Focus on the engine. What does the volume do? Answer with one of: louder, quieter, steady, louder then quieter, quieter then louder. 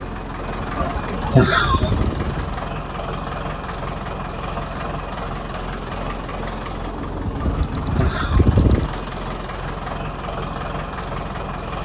steady.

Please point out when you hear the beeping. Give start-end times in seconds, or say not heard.
0.8-2.6, 7.2-8.9.